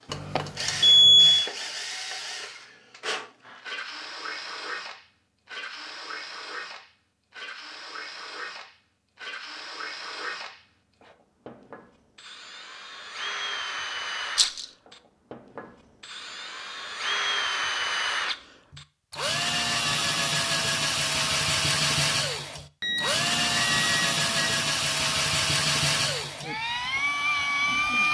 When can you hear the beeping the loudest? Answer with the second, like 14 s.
1 s.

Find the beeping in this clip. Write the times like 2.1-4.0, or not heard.
0.1-1.5, 22.8-24.6.